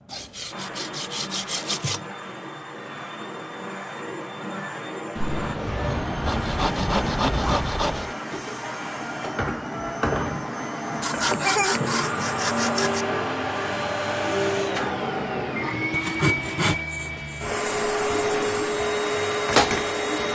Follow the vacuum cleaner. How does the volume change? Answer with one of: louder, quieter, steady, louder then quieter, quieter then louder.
louder.